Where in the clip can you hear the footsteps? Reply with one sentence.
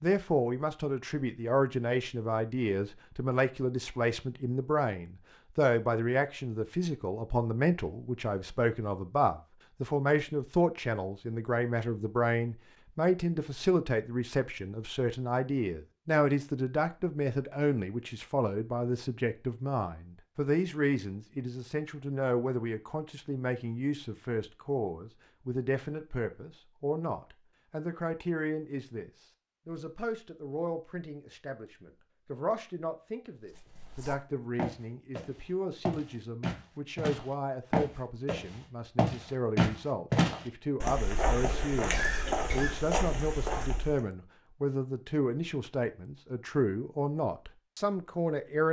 The footsteps can be heard from 33.5 to 44.0 s.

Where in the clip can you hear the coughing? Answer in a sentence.
The coughing can be heard from 41.8 to 42.9 s.